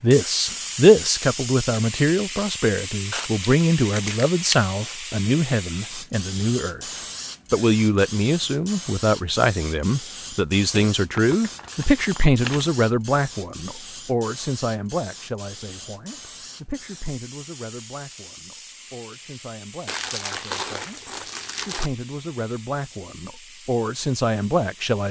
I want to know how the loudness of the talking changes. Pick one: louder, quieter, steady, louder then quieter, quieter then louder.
quieter then louder.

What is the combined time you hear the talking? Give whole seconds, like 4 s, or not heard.
25 s.